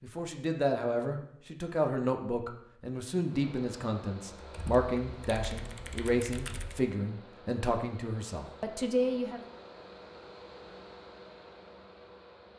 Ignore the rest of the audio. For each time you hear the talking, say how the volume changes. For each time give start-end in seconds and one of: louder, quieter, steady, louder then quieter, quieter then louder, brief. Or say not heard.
0.0-9.4 steady.